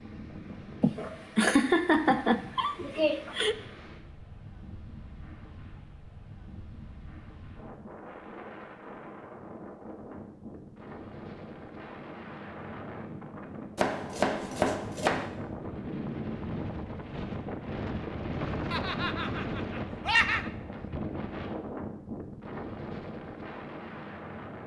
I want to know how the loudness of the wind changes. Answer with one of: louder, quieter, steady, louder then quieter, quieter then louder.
louder.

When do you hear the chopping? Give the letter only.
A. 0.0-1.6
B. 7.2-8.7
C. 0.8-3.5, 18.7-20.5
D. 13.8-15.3
D.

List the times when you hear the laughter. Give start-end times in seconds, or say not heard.
0.8-3.5, 18.7-20.5.